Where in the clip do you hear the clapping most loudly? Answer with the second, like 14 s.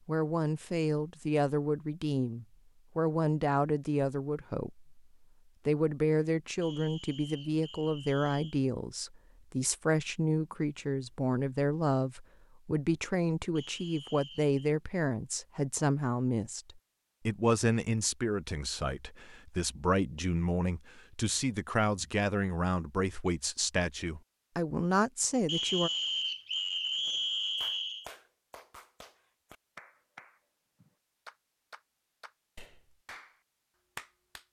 34 s.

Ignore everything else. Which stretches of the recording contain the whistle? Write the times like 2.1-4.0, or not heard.
6.6-8.6, 13.6-14.6, 25.4-28.1.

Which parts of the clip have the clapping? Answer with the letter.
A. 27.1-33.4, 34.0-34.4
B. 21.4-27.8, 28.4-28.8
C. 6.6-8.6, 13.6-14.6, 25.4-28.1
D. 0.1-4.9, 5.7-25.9
A.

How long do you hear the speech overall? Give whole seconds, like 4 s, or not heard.
25 s.